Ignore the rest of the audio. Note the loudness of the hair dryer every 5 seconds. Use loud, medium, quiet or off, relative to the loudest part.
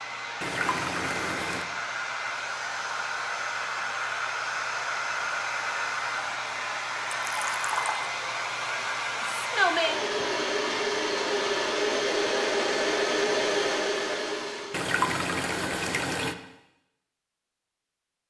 medium, loud, loud, off.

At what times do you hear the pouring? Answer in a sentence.
The pouring can be heard from 0.4 to 1.6 s, from 7.2 to 8.1 s and from 14.7 to 16.4 s.